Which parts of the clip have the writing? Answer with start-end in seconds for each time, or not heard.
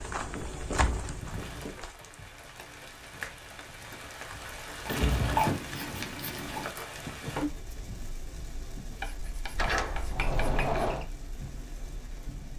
0.1-1.8, 4.8-6.7, 9.0-10.8.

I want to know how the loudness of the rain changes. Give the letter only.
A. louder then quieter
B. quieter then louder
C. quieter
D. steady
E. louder
A.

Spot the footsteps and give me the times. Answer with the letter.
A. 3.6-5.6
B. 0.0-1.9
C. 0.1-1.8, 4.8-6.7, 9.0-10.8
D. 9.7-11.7
B.